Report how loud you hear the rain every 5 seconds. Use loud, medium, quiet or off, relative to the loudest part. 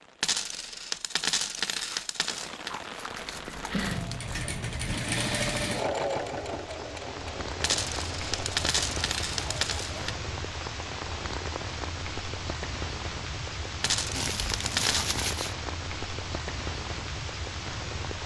medium, loud, loud, loud.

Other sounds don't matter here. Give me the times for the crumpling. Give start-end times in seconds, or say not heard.
1.8-4.5, 14.1-15.6.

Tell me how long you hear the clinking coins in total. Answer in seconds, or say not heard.
6 s.